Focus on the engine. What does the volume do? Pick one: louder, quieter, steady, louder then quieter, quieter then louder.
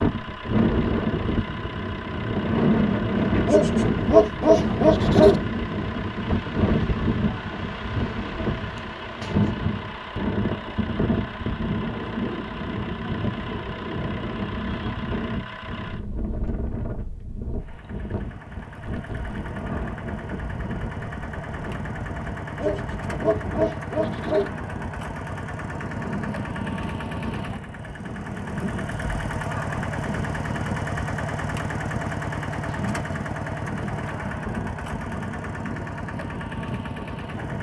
louder.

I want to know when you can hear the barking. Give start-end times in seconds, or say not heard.
3.5-5.4, 22.6-24.5.